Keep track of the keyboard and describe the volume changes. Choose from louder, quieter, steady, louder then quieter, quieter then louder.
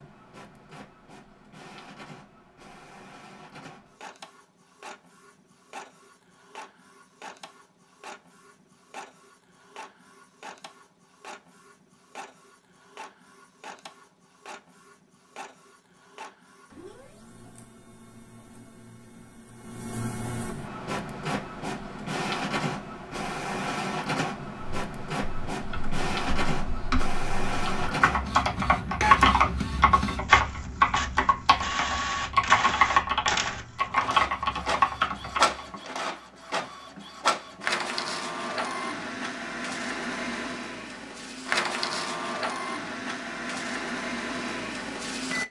louder.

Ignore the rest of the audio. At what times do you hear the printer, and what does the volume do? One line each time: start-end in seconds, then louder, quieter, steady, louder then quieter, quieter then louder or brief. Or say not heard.
0.0-45.4 louder.